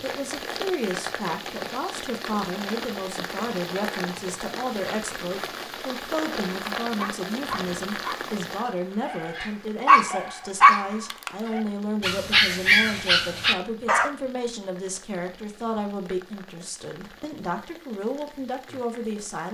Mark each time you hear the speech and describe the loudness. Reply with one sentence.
The speech can be heard from 0.0 to 19.5 s, at a steady volume.